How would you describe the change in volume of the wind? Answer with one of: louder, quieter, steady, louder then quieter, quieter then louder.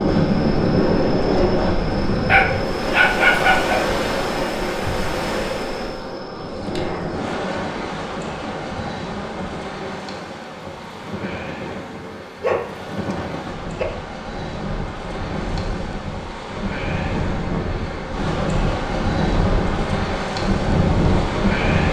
quieter then louder.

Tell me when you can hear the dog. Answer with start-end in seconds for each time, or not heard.
2.2-3.9, 12.4-13.2.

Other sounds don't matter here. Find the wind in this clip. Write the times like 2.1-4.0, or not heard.
0.0-21.8.